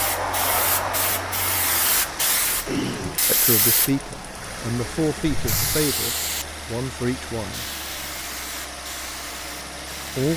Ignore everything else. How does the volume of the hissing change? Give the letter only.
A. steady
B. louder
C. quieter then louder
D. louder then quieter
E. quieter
E.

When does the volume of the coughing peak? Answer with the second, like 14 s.
3 s.